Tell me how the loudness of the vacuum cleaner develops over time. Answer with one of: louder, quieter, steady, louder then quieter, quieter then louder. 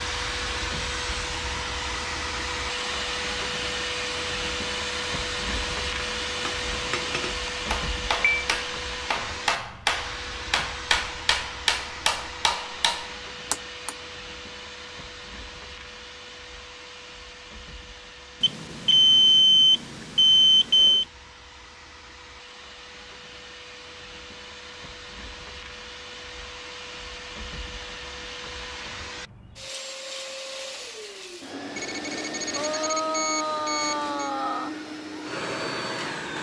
quieter then louder.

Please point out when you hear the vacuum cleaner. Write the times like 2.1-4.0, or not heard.
0.0-36.3.